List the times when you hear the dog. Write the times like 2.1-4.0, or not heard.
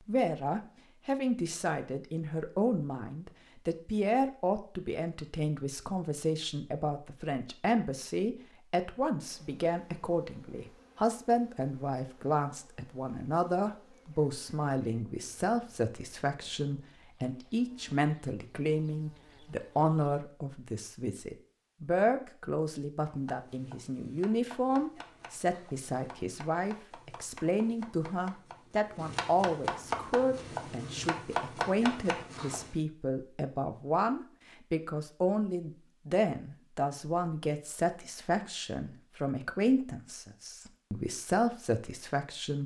not heard.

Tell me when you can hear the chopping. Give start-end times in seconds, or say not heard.
23.1-32.8.